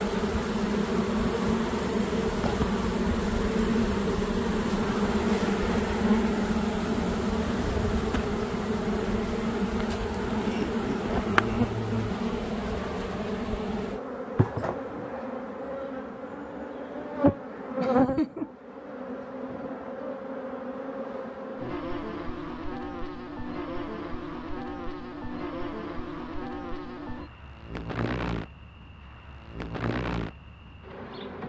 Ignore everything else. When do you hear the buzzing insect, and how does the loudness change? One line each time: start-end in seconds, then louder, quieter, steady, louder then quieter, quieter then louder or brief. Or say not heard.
0.0-31.4 quieter.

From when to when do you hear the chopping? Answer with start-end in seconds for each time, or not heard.
not heard.